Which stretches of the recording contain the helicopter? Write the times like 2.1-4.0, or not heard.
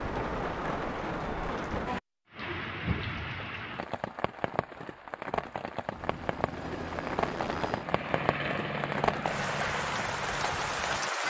5.8-11.2.